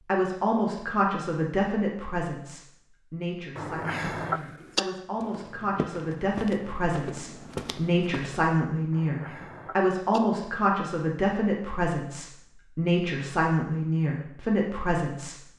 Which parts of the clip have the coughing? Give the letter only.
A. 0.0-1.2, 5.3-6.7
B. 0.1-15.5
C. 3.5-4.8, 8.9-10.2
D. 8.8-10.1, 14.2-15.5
C.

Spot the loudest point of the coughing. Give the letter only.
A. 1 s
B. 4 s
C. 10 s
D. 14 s
B.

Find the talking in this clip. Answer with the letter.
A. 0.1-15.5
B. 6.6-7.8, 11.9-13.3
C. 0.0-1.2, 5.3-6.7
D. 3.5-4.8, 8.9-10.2
A.